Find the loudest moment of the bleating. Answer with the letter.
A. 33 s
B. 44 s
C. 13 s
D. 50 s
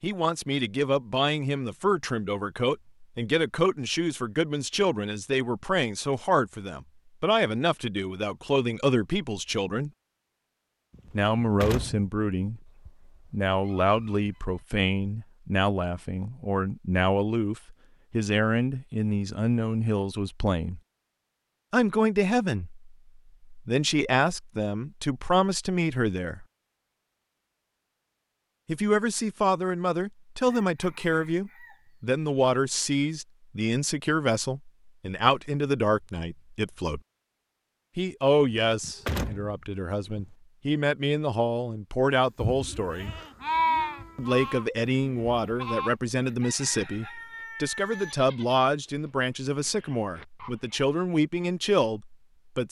B.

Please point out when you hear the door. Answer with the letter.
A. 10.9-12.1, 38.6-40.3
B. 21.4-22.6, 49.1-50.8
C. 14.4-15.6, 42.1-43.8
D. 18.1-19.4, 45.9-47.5
A.